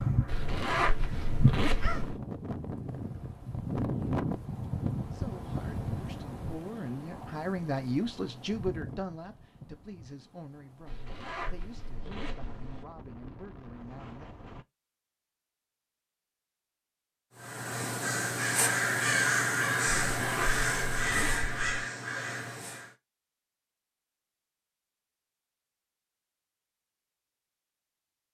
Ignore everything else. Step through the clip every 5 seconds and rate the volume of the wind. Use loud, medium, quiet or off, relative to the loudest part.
loud, medium, quiet, off, off, off.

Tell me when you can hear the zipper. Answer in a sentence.
The zipper can be heard from 0.2 to 2.2 s, from 10.8 to 12.8 s and from 20.1 to 21.9 s.